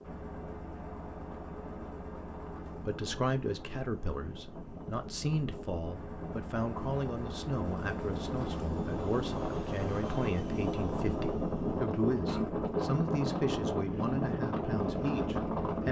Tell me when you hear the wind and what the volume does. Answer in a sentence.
The wind can be heard from 0.0 to 15.8 s, getting louder.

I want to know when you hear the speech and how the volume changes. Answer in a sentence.
The speech can be heard from 2.9 to 15.8 s, at a steady volume.